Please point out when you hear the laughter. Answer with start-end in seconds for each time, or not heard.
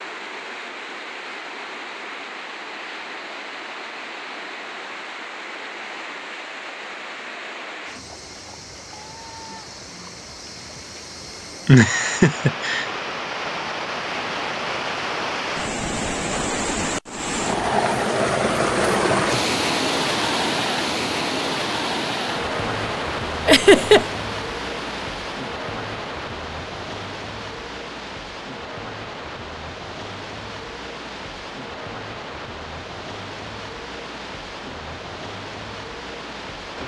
11.7-12.8, 23.4-24.1.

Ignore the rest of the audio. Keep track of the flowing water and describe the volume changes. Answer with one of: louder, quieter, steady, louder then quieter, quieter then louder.
louder then quieter.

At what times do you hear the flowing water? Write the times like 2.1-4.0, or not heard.
0.0-36.8.